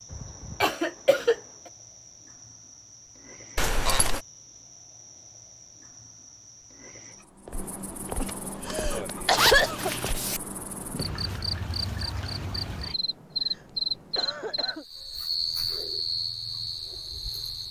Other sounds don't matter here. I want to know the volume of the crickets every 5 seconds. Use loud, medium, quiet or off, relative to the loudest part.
quiet, medium, loud, loud.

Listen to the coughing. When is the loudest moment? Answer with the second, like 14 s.
9 s.